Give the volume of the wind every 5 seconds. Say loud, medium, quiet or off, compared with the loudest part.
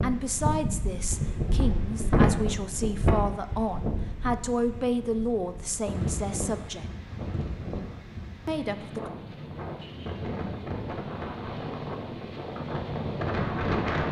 loud, medium, loud.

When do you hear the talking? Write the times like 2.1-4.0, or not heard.
0.0-6.8, 8.4-9.1.